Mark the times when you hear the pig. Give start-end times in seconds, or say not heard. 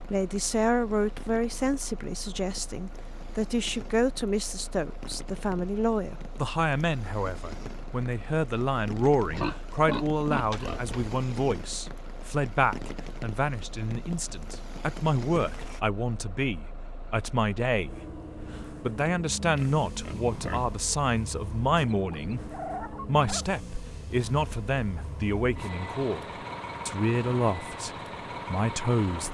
9.2-11.2, 19.4-20.8.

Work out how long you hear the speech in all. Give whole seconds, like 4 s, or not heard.
27 s.